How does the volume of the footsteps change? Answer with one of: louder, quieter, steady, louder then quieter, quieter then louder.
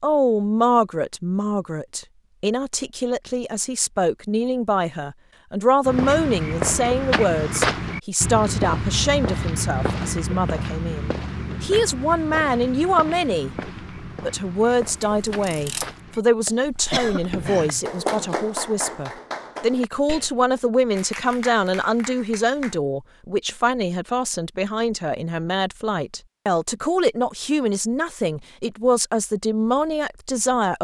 quieter.